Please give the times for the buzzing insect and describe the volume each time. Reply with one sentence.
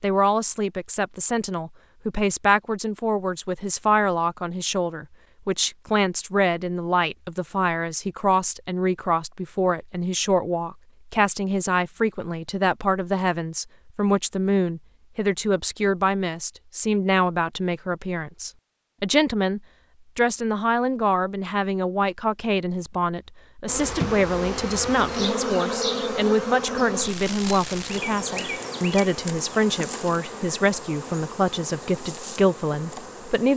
The buzzing insect can be heard from 23.6 to 33.5 s, getting quieter.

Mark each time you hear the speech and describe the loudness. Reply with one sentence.
You can hear the speech from 0.0 to 33.5 s, at a steady volume.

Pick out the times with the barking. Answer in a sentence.
You can't hear the barking here.